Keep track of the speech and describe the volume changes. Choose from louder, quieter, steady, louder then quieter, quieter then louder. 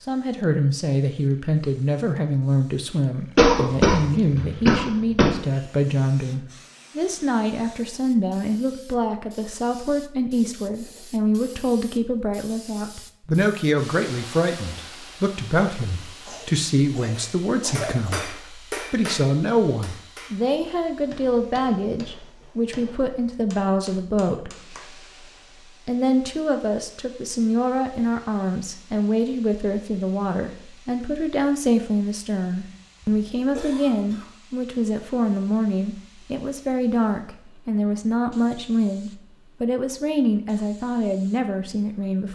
steady.